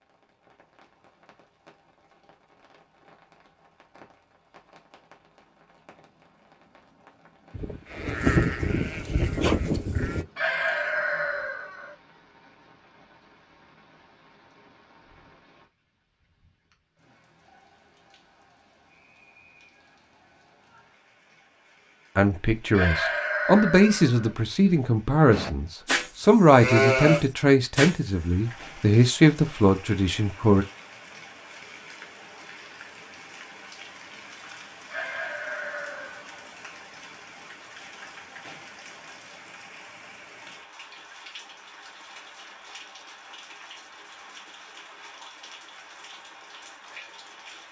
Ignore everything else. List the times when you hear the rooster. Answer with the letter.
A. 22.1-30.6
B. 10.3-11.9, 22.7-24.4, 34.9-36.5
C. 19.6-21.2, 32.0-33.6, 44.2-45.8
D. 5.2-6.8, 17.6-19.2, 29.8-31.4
B.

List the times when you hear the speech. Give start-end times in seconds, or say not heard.
22.1-30.6.